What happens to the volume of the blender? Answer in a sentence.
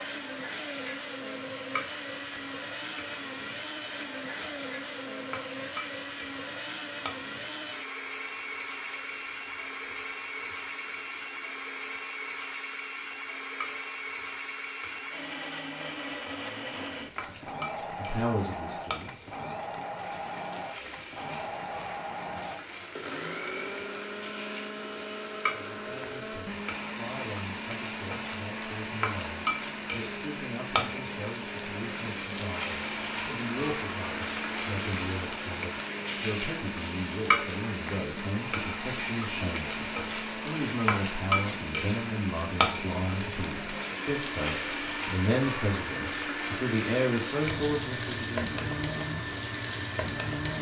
The volume of the blender stays about the same.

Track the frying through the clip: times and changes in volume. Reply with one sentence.
You can hear the frying from 0.1 to 50.5 s, getting louder.